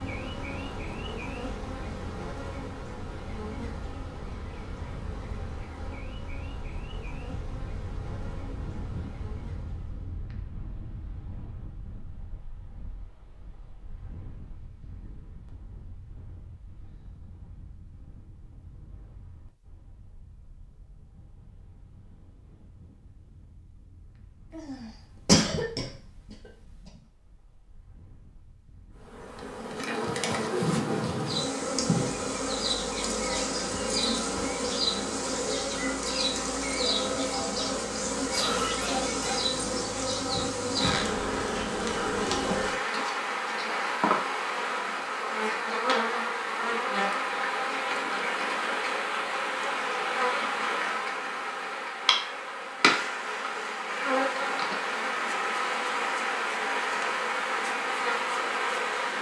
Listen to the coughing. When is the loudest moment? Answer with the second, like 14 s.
25 s.